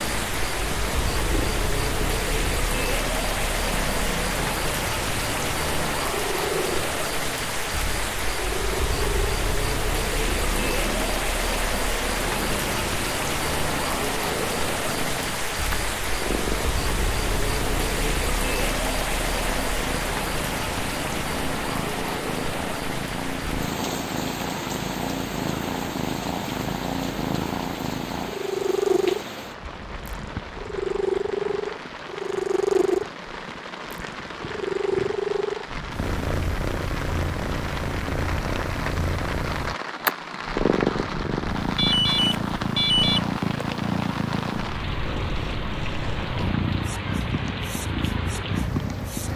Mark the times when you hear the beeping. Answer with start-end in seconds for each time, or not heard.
41.8-43.2.